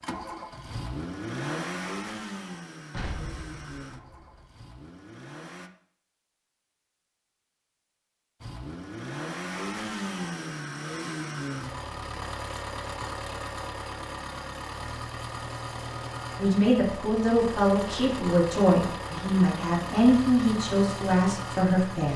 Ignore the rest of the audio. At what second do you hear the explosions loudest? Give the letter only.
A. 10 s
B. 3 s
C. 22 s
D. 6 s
B.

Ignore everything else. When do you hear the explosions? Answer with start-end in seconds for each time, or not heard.
2.9-4.5.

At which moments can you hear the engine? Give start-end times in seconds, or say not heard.
0.0-5.7, 8.4-22.1.